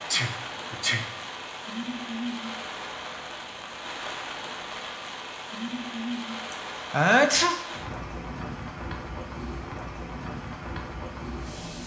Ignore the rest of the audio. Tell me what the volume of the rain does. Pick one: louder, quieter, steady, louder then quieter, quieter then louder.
steady.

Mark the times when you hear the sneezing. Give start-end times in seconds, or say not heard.
0.1-1.1, 6.5-7.6.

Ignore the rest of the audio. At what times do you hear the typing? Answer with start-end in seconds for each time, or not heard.
not heard.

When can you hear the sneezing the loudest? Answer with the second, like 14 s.
7 s.